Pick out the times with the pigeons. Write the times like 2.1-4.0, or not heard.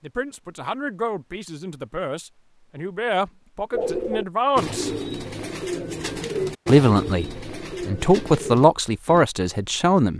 3.7-9.2.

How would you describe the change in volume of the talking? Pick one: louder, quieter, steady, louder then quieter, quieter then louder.
louder.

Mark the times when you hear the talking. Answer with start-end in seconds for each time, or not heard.
0.0-4.9, 6.7-10.1.